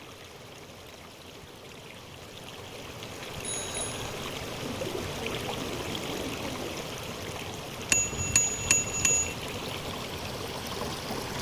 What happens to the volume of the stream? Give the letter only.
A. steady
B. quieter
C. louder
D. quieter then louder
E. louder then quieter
C.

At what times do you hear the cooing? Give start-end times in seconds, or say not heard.
4.6-6.8.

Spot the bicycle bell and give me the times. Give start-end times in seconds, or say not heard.
3.4-4.0, 7.9-9.3.